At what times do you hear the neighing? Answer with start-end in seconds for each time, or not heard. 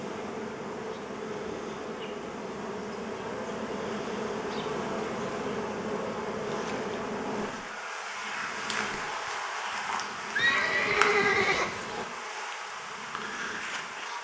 10.3-12.1.